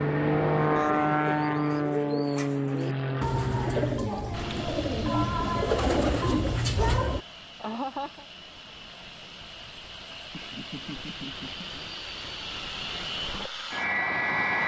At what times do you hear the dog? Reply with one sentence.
The dog can't be heard in this clip.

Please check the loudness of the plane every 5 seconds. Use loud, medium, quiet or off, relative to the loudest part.
loud, quiet, medium.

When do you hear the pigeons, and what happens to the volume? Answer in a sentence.
You can hear the pigeons from 1.2 to 7.2 s, getting louder.